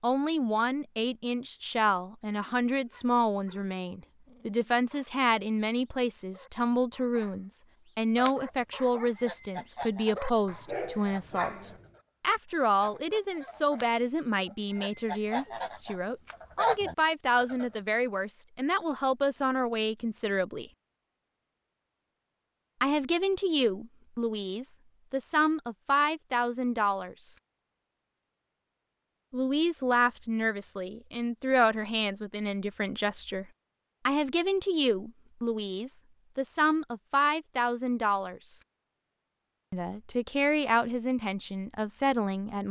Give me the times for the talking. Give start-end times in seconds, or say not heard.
0.0-20.7, 22.8-27.3, 29.3-33.5, 34.0-38.5, 39.7-42.6.